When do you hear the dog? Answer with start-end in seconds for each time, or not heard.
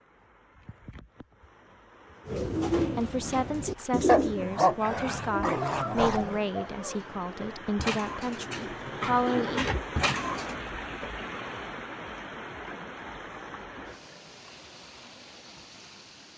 4.0-6.4.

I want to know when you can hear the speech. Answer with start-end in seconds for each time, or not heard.
2.8-9.7.